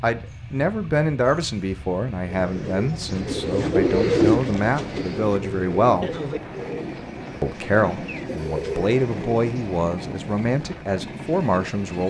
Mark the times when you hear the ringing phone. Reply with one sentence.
You can't hear the ringing phone here.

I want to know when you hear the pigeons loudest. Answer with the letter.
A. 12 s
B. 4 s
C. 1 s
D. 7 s
B.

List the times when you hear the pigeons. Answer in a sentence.
You can hear the pigeons from 2.2 to 9.8 s.